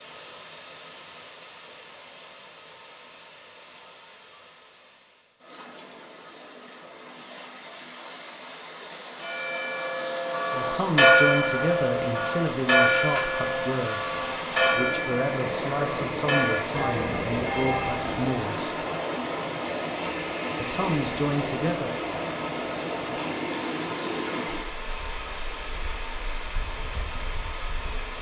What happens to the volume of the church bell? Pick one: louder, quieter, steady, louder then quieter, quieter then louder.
quieter.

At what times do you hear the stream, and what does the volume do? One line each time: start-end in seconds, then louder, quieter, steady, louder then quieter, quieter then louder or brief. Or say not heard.
0.0-28.1 louder.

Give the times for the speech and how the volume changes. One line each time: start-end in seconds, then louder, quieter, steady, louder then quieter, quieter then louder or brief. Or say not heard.
10.5-18.7 steady
20.6-21.9 brief.